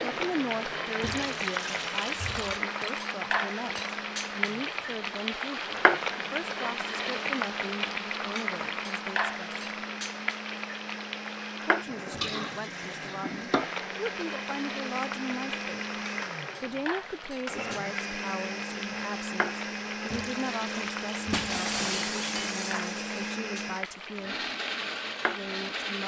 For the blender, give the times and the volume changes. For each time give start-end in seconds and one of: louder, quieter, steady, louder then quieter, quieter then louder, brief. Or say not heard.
0.0-26.0 louder.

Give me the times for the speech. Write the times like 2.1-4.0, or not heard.
0.1-9.7, 11.7-15.8, 16.6-24.4, 25.2-26.0.